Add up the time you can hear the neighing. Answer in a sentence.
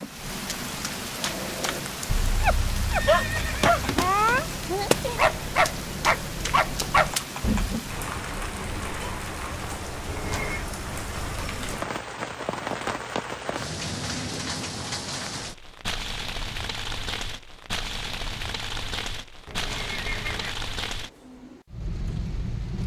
The neighing can be heard for 4 seconds in total.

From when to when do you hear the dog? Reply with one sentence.
The dog can be heard from 1.2 to 7.8 s.